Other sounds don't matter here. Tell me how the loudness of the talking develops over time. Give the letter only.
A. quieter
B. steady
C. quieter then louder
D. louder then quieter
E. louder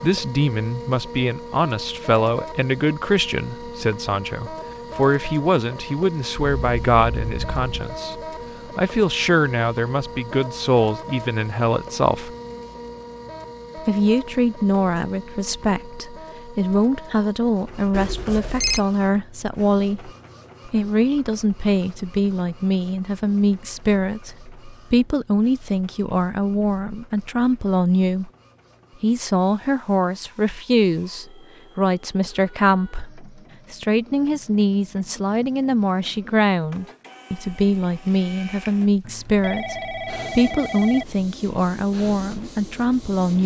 B.